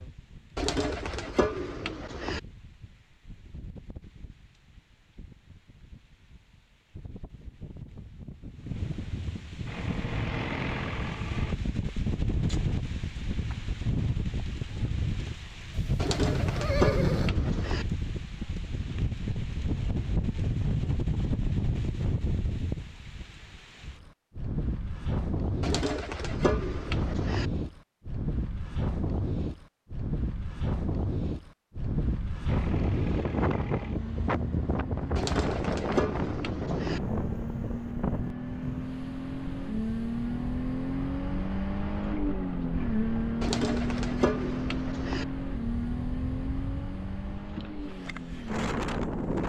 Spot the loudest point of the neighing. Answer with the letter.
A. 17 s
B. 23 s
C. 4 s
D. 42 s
A.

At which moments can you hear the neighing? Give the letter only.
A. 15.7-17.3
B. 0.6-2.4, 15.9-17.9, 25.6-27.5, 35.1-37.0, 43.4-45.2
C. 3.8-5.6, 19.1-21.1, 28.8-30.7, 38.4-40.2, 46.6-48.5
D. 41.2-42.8
A.